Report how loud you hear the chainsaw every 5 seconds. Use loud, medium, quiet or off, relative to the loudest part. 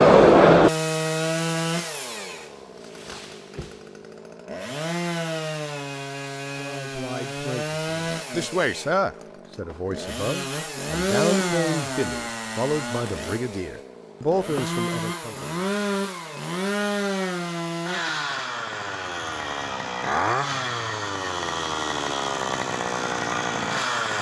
loud, medium, medium, medium, medium.